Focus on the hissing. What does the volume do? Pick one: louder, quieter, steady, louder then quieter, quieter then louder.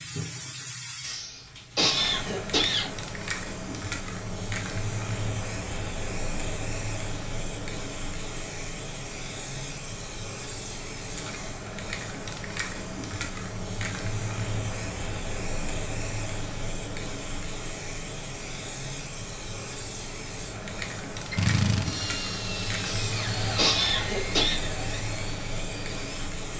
steady.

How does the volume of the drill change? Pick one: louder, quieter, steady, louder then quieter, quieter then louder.
quieter.